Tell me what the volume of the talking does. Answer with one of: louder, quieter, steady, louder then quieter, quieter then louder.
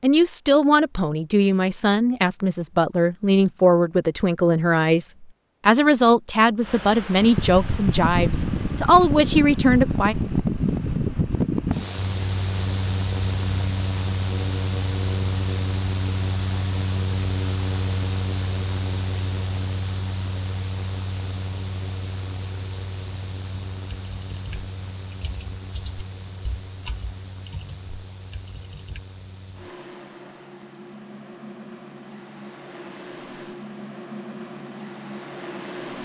steady.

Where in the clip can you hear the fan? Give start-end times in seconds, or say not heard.
6.6-36.0.